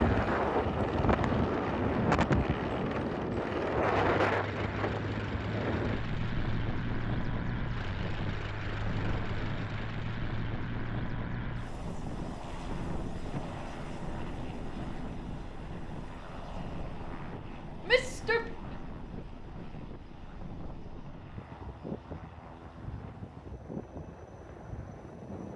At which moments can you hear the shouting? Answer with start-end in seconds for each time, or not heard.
17.9-18.5.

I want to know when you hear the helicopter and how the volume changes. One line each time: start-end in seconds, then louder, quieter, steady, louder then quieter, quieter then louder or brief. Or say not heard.
0.0-25.5 quieter.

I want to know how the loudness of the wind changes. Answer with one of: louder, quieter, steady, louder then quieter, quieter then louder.
quieter.